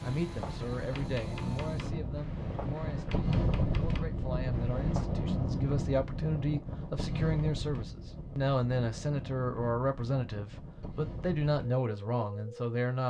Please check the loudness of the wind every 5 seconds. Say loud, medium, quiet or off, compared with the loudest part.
loud, loud, medium.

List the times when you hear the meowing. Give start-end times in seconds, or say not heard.
not heard.